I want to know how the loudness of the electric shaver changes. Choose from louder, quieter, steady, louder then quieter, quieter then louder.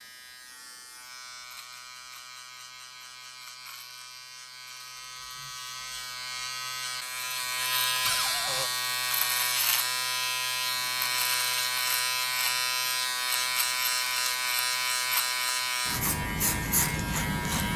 louder.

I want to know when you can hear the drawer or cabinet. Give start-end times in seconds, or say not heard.
8.0-8.7.